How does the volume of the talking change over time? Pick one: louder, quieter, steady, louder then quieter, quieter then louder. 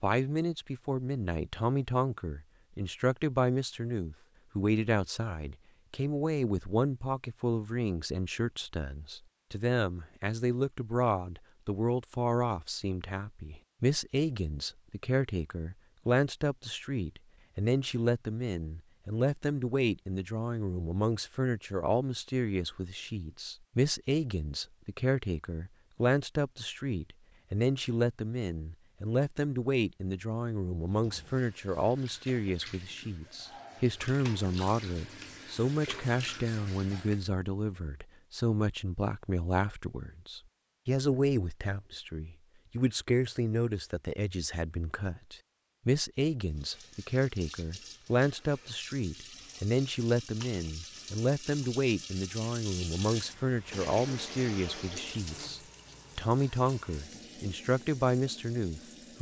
steady.